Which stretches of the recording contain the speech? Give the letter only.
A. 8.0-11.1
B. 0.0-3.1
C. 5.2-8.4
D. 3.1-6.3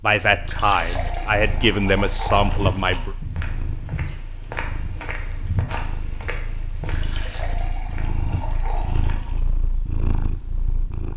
B.